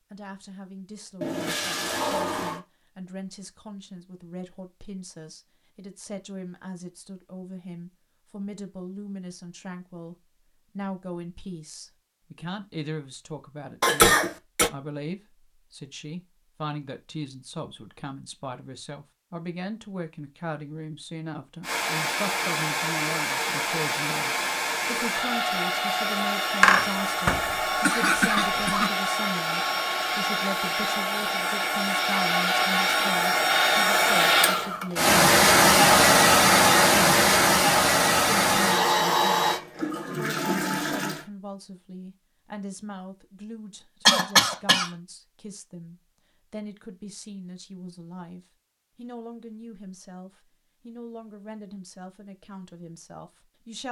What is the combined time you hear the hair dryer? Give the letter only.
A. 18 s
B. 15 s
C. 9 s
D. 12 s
A.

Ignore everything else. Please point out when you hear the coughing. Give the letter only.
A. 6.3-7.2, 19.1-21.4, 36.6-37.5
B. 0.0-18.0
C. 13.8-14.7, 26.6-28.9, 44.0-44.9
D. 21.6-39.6
C.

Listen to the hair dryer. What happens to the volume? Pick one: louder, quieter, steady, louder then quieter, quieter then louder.
louder.